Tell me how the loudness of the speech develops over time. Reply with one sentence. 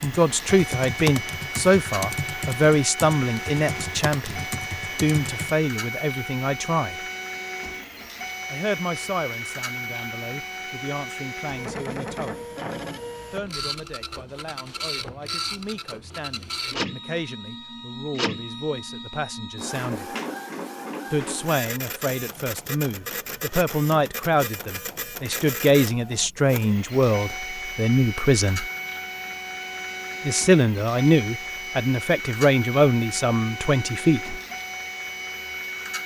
The volume of the speech goes down, then up.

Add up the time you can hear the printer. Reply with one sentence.
The printer can be heard for 36 seconds in total.